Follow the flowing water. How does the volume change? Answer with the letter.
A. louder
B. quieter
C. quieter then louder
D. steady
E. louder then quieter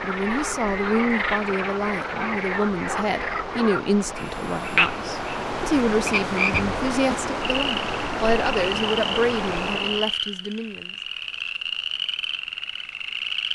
A.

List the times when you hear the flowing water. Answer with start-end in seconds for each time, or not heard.
0.0-10.2.